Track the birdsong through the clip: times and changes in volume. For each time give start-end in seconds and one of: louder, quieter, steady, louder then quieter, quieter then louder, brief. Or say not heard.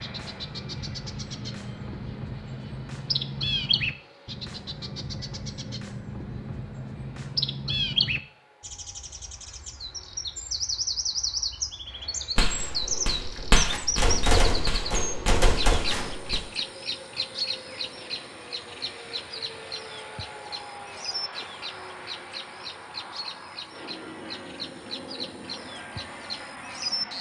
0.0-27.1 quieter.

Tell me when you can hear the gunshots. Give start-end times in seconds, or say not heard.
12.3-16.4.